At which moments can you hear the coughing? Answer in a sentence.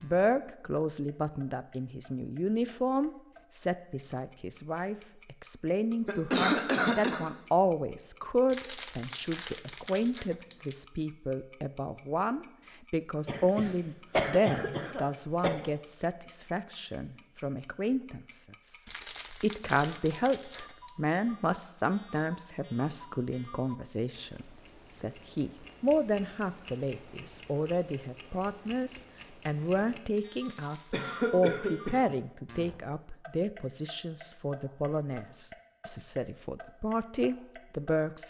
You can hear the coughing from 6.0 to 7.2 s, from 13.2 to 15.6 s and from 30.9 to 32.1 s.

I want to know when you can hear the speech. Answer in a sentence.
You can hear the speech from 0.0 to 18.8 s and from 19.4 to 38.2 s.